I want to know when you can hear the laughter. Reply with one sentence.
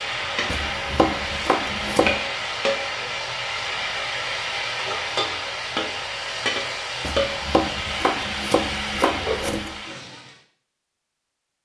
The laughter can't be heard in this clip.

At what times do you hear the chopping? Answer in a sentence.
You can hear the chopping from 0.5 to 2.2 s and from 7.0 to 9.8 s.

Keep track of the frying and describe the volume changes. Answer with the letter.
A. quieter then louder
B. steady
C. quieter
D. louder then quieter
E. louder
B.